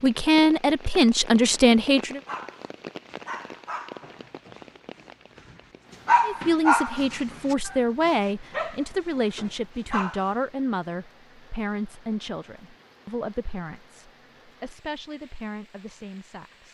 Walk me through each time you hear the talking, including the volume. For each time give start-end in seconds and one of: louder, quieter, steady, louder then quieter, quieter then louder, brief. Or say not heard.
0.0-2.2 brief
6.2-16.6 quieter.